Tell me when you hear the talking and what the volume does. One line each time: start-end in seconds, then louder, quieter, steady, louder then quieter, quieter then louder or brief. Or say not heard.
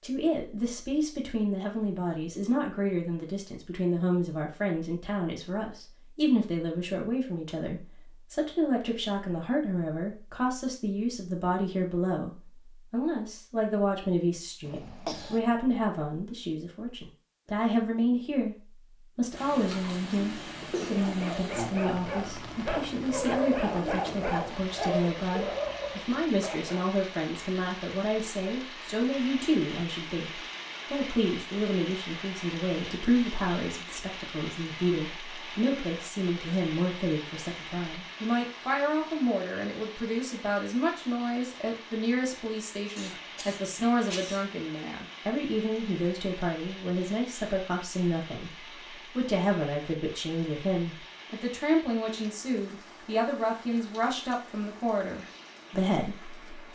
0.0-18.6 steady
19.1-48.5 steady
49.1-56.7 steady.